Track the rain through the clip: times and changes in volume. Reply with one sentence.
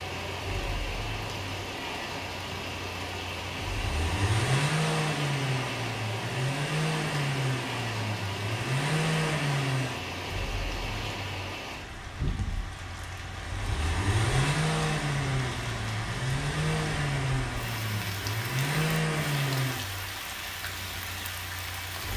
The rain can be heard from 0.0 to 22.1 s, at a steady volume.